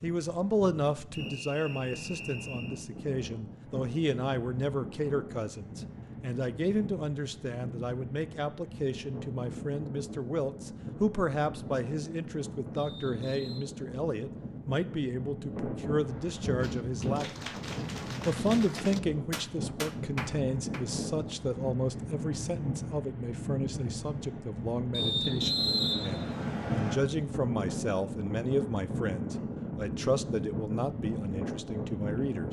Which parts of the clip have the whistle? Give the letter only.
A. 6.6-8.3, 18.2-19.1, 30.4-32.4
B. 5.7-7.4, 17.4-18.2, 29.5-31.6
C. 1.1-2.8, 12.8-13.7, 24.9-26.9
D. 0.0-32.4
C.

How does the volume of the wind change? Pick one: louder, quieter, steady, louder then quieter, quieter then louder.
louder.